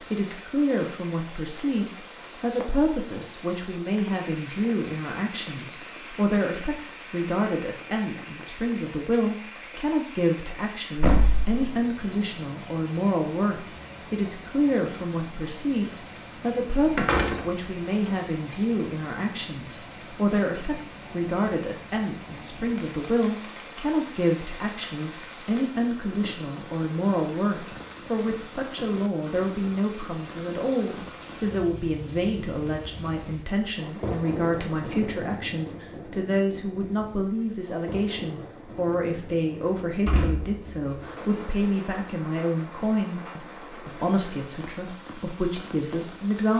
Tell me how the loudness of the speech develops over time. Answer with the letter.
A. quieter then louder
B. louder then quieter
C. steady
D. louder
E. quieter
C.